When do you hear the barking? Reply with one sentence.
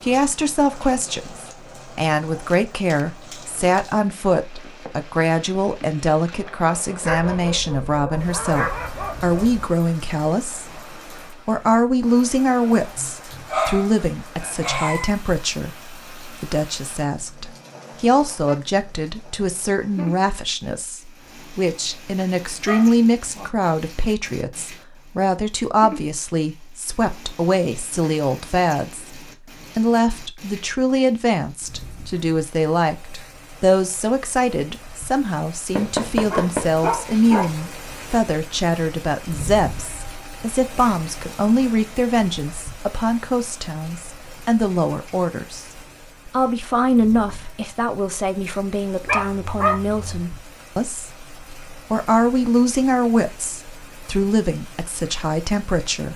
You can hear the barking from 7.0 to 9.7 s, from 12.9 to 15.2 s, from 22.6 to 23.4 s, from 35.8 to 37.5 s and from 49.0 to 50.2 s.